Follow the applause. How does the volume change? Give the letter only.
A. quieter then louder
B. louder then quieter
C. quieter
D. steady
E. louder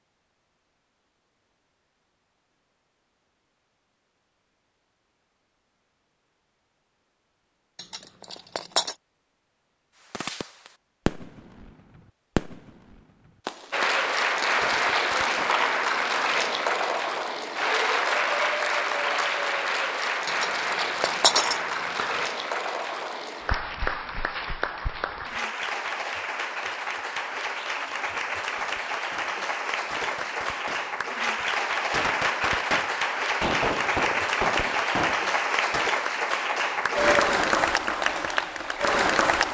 A.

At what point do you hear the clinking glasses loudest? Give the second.
21 s.